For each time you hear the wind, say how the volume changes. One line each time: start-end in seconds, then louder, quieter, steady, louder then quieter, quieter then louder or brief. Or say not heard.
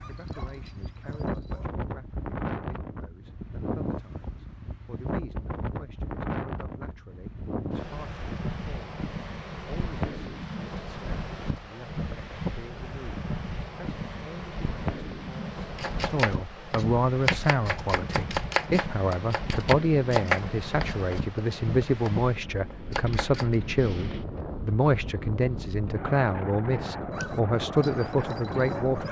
0.0-29.0 steady.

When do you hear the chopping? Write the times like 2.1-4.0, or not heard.
15.8-23.6.